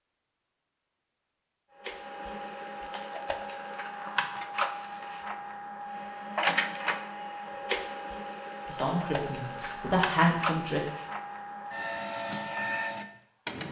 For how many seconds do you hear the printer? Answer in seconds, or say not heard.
12 s.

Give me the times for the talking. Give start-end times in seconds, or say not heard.
8.7-10.8.